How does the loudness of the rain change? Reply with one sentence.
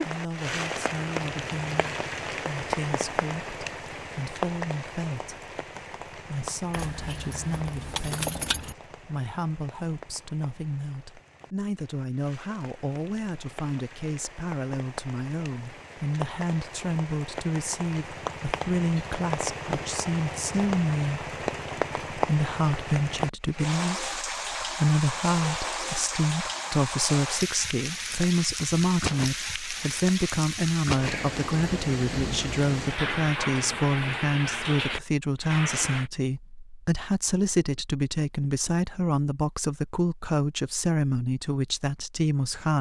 The loudness of the rain goes down, then up.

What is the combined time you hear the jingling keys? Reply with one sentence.
The jingling keys can be heard for 2 seconds in total.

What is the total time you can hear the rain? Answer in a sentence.
The rain can be heard for 36 seconds in total.